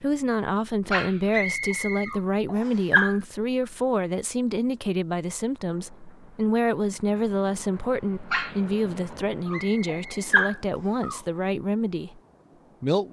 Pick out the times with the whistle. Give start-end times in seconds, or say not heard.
1.3-2.9, 9.5-11.1.